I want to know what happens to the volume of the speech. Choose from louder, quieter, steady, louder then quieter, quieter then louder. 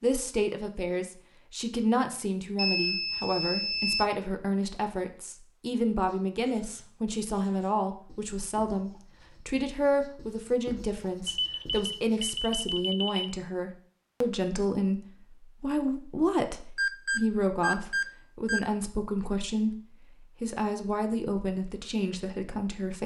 steady.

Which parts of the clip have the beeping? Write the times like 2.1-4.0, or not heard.
2.5-4.0, 11.2-13.2, 16.8-18.6.